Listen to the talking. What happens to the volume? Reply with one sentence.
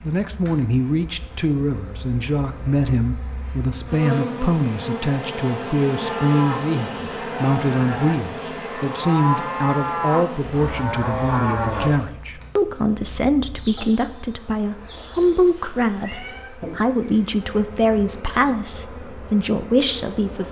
The volume of the talking stays about the same.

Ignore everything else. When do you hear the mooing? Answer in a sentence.
You can hear the mooing from 6.0 to 12.0 s.